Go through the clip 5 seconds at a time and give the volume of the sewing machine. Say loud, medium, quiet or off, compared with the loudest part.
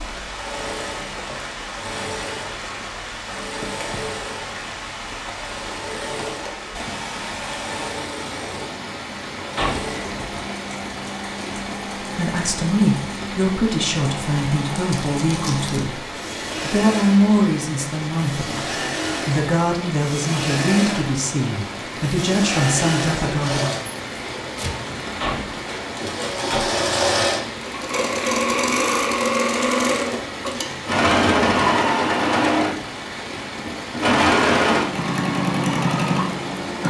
quiet, quiet, quiet, medium, medium, loud, loud, loud.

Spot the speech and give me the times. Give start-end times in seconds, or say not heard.
12.0-23.8.